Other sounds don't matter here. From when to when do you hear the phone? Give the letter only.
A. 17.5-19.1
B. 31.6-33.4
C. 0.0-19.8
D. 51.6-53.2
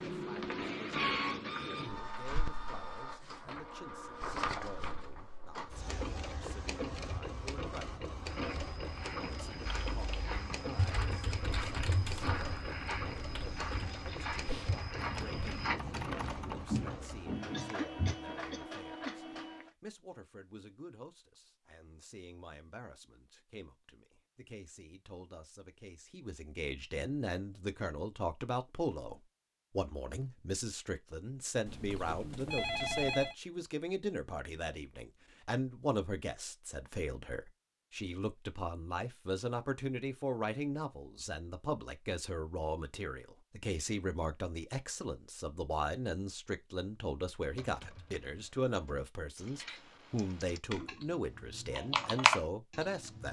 B.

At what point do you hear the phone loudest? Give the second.
33 s.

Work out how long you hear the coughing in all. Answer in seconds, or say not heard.
2 s.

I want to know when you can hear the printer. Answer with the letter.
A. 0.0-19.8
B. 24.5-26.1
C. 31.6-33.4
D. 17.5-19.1
A.